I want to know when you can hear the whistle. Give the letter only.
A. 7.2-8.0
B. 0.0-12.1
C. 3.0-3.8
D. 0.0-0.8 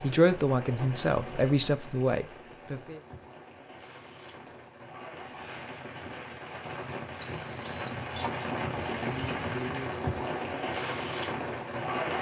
A.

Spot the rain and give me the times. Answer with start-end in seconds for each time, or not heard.
0.0-12.1.